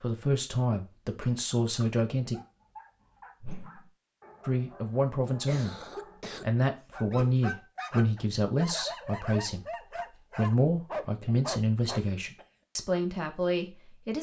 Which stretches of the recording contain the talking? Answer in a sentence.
The talking can be heard from 0.0 to 2.4 s, from 4.5 to 5.8 s and from 6.4 to 14.1 s.